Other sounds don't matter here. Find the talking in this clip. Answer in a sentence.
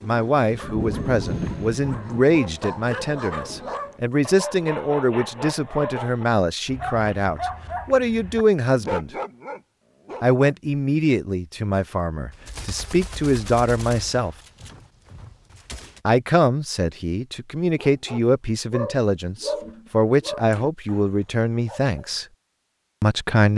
You can hear the talking from 0.0 to 9.1 s, from 10.2 to 14.3 s, from 16.1 to 22.2 s and from 23.0 to 23.5 s.